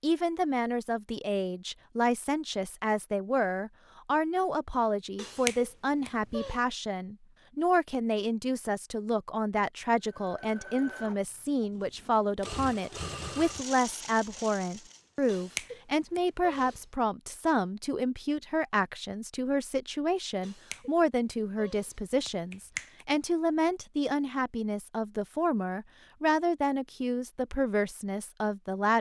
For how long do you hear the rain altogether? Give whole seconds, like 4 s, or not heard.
not heard.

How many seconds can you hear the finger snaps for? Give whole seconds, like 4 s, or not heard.
6 s.